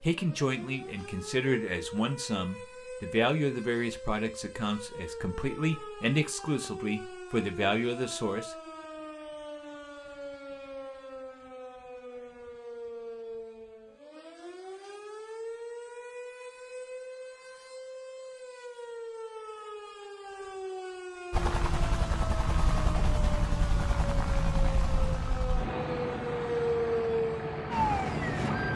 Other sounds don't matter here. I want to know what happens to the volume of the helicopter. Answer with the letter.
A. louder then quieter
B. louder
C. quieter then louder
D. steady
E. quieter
D.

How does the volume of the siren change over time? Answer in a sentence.
The loudness of the siren goes up.